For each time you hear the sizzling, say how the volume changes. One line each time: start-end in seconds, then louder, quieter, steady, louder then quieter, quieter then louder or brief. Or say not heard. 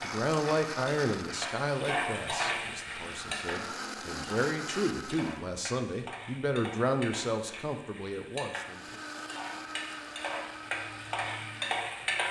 0.0-12.2 quieter then louder.